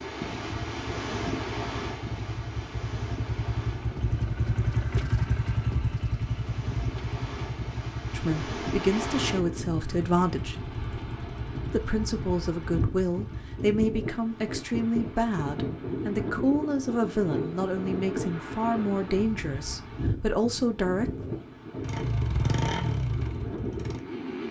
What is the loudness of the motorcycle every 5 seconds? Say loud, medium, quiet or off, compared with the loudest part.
loud, loud, medium, off, loud.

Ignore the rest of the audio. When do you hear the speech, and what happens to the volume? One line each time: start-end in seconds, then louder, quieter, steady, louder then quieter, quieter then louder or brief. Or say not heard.
8.1-10.6 brief
11.7-21.1 steady.